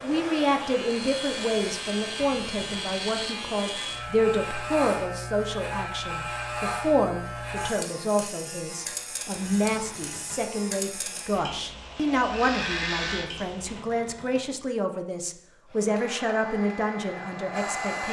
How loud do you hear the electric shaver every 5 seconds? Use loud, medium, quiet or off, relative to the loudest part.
loud, loud, loud, off.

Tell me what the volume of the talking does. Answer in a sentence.
The loudness of the talking stays about the same.